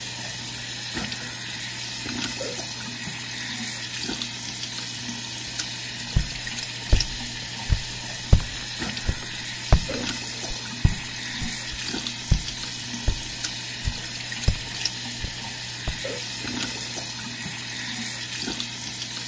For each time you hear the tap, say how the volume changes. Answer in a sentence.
The tap can be heard from 0.0 to 19.2 s, at a steady volume.